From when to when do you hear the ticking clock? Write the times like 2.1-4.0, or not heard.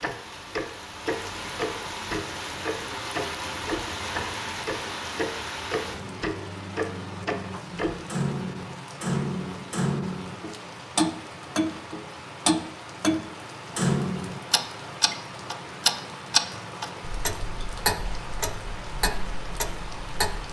0.0-20.4.